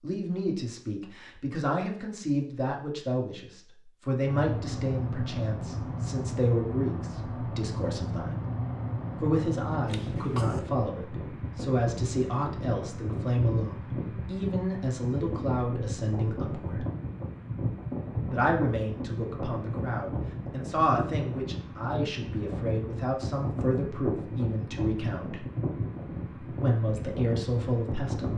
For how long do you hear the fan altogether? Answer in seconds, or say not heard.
24 s.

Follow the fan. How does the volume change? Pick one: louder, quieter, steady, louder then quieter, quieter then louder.
steady.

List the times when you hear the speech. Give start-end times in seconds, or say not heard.
0.0-8.4, 9.2-16.9, 18.3-25.4, 26.4-28.3.